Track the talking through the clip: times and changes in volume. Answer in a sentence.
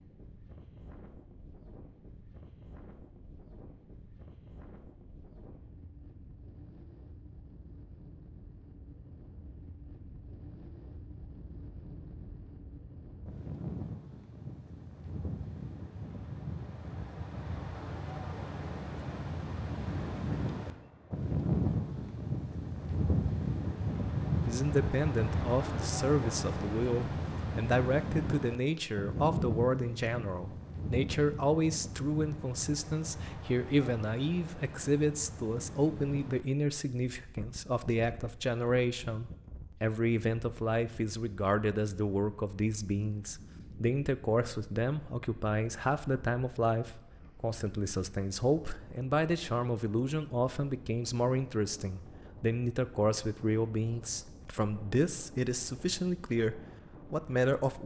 The talking can be heard from 24.4 to 57.8 s, at a steady volume.